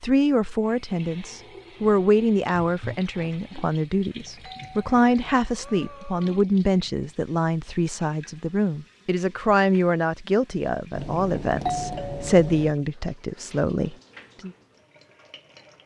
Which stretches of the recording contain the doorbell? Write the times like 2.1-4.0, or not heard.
4.4-6.4, 10.9-12.8.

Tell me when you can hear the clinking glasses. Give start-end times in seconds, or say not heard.
not heard.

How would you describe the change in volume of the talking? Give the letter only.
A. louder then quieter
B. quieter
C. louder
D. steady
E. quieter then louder
D.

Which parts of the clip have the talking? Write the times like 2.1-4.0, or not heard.
0.0-14.5.